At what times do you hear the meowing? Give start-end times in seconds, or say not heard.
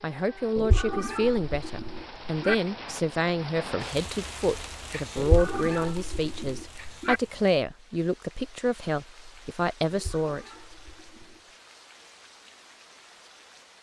0.6-2.5, 5.2-7.2, 9.9-11.4.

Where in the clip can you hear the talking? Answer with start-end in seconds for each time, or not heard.
0.0-10.4.